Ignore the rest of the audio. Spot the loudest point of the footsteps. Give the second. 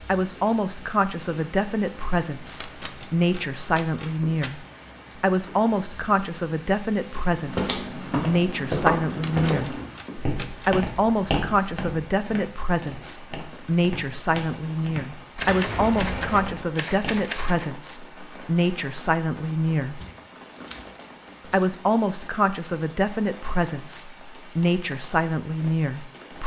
9 s.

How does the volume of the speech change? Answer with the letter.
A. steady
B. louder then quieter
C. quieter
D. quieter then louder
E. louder
A.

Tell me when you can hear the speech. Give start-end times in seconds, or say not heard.
0.1-9.8, 10.7-20.0, 21.4-26.4.